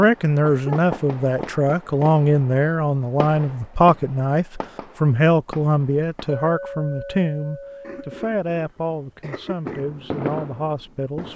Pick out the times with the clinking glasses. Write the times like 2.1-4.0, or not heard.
6.2-8.2.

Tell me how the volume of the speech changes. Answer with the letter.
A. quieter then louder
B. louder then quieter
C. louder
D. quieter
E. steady
D.